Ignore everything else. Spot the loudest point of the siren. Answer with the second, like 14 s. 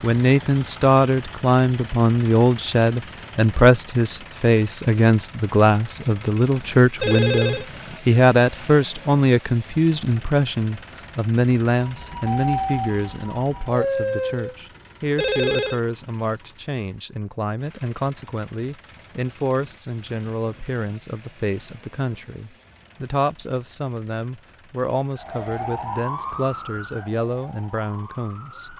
14 s.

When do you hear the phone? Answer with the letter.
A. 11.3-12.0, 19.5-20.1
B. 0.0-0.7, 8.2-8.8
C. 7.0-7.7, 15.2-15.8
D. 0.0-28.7
C.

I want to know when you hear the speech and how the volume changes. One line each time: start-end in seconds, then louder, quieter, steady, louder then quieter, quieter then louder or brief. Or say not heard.
0.0-28.7 quieter.